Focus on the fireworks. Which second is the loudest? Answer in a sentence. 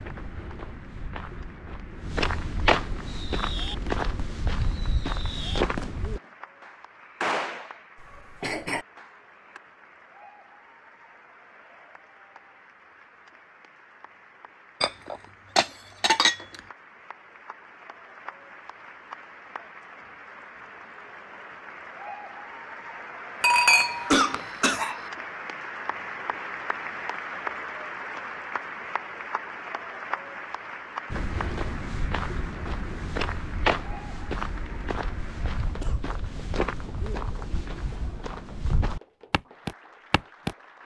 The volume of the fireworks peaks at 7 seconds.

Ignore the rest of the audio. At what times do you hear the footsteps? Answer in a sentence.
The footsteps can be heard from 0.0 to 6.2 s and from 31.1 to 40.5 s.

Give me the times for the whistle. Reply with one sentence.
The whistle can't be heard in this clip.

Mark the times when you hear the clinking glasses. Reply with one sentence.
You can hear the clinking glasses from 14.8 to 16.6 s and from 23.4 to 24.8 s.